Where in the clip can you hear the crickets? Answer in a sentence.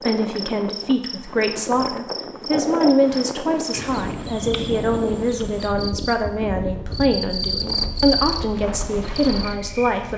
The crickets can be heard from 0.0 to 10.1 s.